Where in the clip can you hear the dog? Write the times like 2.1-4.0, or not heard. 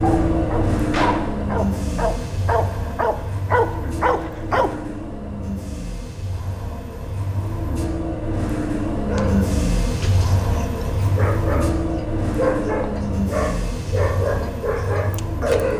0.0-4.8, 9.1-15.7.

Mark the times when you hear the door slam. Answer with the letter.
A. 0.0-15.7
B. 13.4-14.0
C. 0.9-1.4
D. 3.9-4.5
C.